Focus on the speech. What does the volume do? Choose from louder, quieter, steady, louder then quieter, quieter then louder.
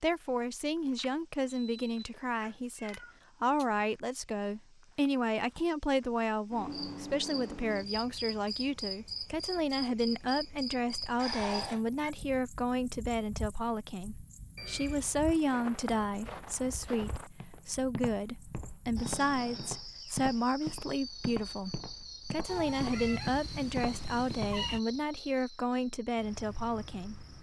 steady.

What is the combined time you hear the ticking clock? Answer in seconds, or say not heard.
not heard.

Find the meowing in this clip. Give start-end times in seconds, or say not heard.
2.4-3.6, 11.2-12.2, 22.4-24.8.